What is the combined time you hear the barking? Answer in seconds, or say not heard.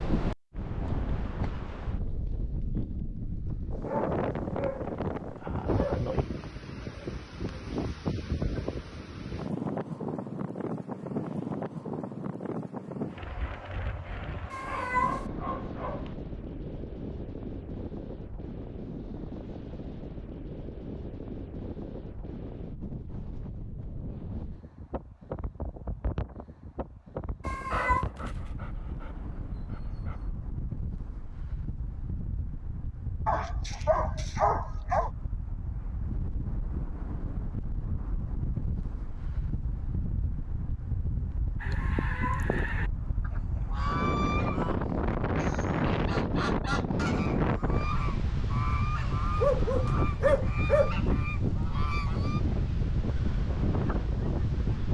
10 s.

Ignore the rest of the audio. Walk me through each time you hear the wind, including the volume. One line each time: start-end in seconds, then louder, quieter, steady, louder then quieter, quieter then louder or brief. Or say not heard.
0.0-54.9 quieter then louder.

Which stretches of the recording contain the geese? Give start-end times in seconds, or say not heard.
41.6-52.4.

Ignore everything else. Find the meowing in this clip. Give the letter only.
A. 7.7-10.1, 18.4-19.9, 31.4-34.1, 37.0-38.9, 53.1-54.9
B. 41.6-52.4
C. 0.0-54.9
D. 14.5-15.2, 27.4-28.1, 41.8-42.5
D.